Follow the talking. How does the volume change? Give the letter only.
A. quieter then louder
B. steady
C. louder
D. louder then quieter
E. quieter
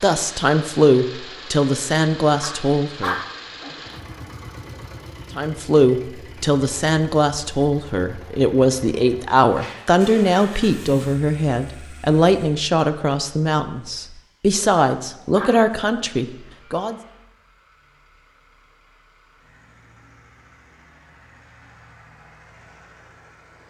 B.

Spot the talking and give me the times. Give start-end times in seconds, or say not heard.
0.0-3.1, 5.3-16.9.